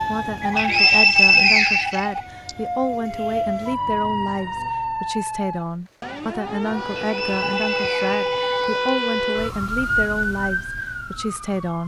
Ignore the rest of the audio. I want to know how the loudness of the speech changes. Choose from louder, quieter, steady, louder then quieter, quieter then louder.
steady.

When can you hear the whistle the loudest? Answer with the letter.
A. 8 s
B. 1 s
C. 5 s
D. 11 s
B.